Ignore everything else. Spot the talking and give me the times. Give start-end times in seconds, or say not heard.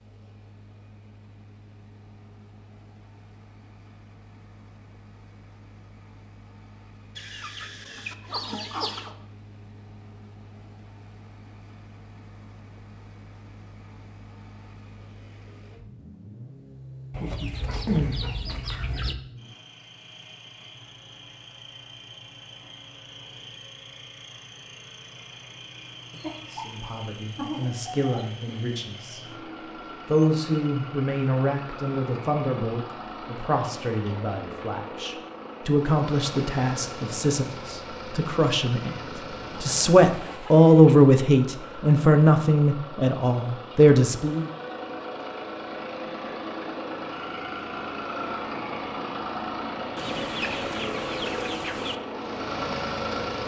26.5-29.2, 30.1-39.0, 39.6-44.5.